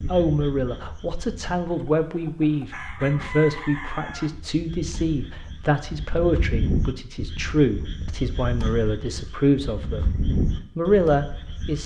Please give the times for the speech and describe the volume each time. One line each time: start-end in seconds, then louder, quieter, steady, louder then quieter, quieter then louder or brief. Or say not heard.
0.1-10.2 steady
10.8-11.8 brief.